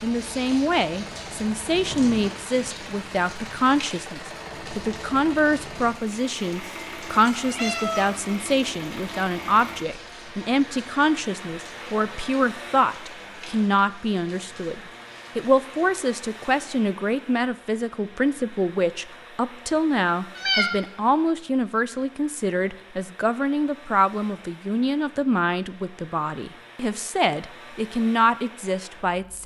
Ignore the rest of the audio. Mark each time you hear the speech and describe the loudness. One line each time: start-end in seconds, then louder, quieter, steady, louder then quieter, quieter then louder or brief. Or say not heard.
0.0-29.4 steady.